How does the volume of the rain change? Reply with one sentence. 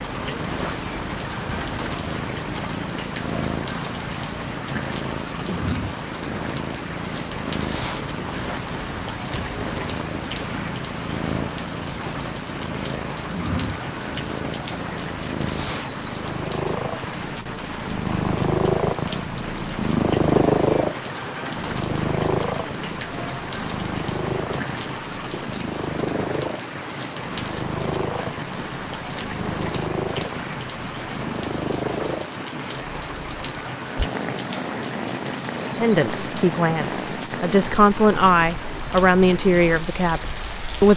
The loudness of the rain stays about the same.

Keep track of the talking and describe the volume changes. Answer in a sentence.
The loudness of the talking goes up, then down.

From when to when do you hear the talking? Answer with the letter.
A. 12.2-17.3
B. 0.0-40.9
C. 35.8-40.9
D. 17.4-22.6
C.